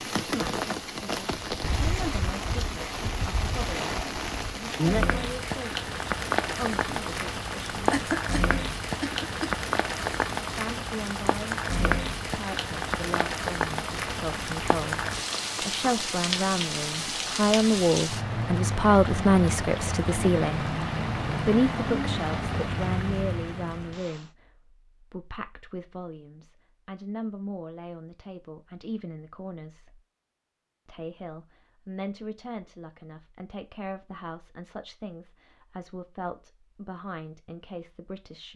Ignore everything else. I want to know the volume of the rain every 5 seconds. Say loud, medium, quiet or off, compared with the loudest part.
loud, loud, loud, loud, loud, off, off, off.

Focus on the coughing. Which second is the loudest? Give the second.
8 s.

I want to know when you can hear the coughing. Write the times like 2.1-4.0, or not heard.
7.9-9.5.